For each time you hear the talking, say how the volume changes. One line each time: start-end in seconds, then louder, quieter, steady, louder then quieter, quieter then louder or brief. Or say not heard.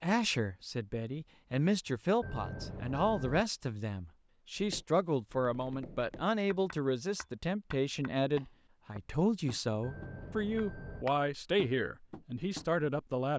0.0-13.3 steady.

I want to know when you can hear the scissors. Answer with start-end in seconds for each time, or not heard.
not heard.